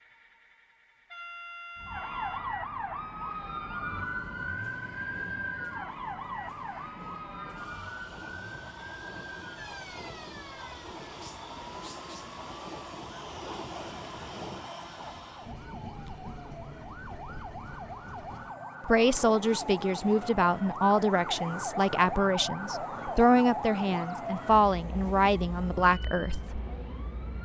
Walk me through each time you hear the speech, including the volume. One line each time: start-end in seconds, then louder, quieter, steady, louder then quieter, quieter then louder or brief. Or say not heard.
18.9-26.6 steady.